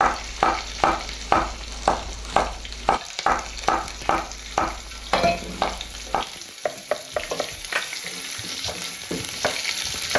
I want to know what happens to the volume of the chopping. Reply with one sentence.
The volume of the chopping goes down.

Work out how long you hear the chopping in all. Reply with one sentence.
You can hear the chopping for 10 seconds altogether.